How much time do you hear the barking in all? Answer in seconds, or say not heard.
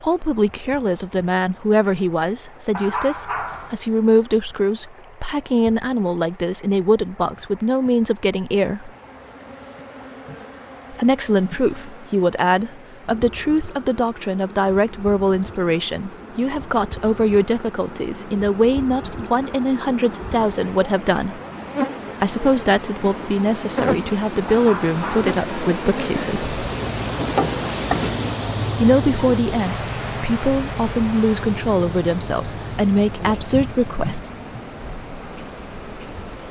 2 s.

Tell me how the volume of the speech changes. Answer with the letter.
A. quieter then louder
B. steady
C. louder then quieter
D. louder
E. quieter
B.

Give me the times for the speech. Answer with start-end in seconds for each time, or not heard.
0.0-8.9, 10.9-21.4, 22.2-26.6, 28.8-34.2.